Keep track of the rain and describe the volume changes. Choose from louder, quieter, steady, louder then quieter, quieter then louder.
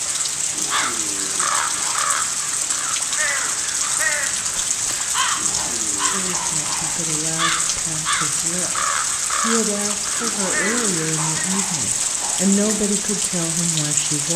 steady.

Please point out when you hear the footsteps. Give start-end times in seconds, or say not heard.
not heard.